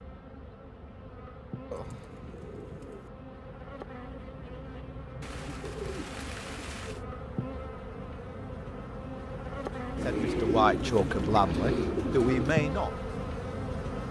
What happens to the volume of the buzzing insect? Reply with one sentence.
The volume of the buzzing insect goes up.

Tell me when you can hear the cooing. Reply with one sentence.
The cooing can be heard from 1.7 to 3.1 s, from 5.2 to 7.0 s and from 9.9 to 12.6 s.